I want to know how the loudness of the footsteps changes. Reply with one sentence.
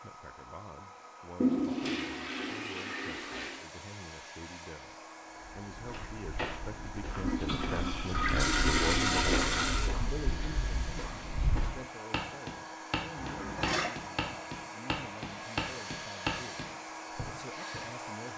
The volume of the footsteps goes up.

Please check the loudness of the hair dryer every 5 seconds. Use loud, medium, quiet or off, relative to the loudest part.
medium, medium, loud, loud.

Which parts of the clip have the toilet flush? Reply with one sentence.
The toilet flush can be heard from 1.4 to 3.6 s, from 7.2 to 9.9 s and from 13.2 to 13.9 s.